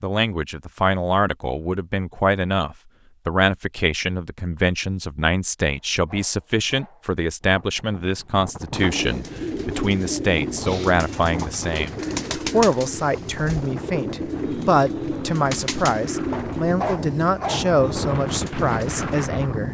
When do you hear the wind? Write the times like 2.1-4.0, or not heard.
7.4-19.6.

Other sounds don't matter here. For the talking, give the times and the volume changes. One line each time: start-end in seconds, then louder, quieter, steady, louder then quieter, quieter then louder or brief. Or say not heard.
0.0-19.6 steady.